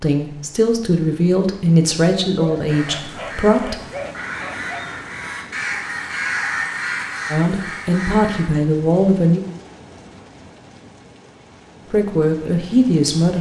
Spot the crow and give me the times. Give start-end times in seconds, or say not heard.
2.6-8.5.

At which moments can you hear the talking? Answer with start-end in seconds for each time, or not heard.
0.0-3.8, 7.3-9.4, 11.9-13.3.